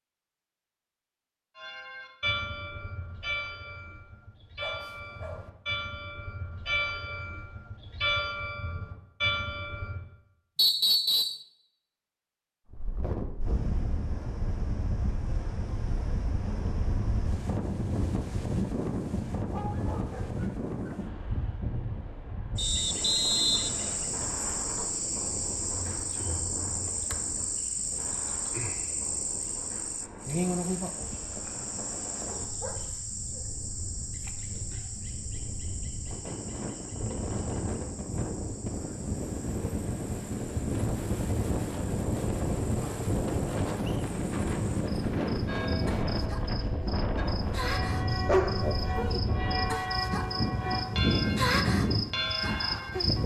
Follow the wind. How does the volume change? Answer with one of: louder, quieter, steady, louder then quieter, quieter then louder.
quieter then louder.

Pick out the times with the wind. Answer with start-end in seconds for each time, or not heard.
12.7-53.2.